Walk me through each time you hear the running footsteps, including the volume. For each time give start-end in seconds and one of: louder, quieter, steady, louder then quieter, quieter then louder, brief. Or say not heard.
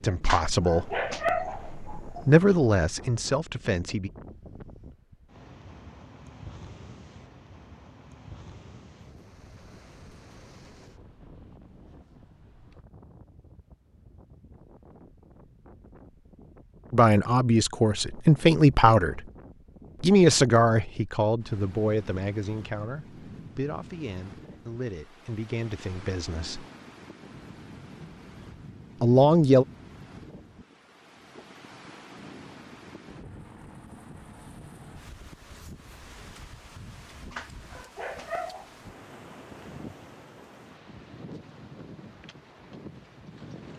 not heard.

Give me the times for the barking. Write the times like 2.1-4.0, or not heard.
0.2-2.7, 37.3-38.8.